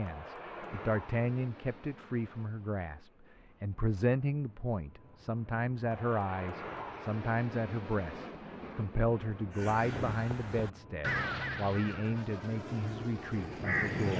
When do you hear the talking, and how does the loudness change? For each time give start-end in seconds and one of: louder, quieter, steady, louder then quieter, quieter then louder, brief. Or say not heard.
0.0-14.1 steady.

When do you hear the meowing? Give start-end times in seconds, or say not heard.
not heard.